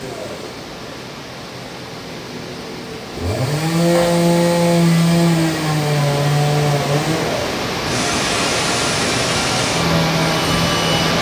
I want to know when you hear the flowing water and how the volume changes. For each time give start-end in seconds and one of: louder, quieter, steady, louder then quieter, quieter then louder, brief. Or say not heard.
0.0-11.1 louder.